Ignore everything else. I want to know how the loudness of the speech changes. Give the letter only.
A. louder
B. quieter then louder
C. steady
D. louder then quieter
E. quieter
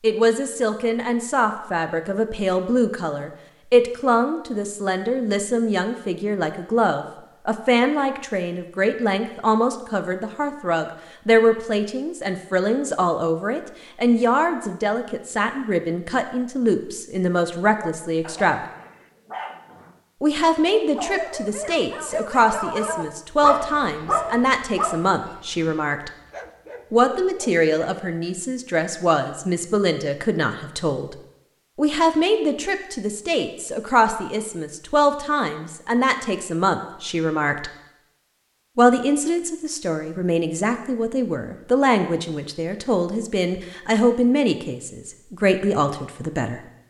C.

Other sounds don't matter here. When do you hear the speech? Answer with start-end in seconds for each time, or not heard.
0.0-18.6, 20.2-26.1, 26.9-31.1, 31.8-37.7, 38.8-46.6.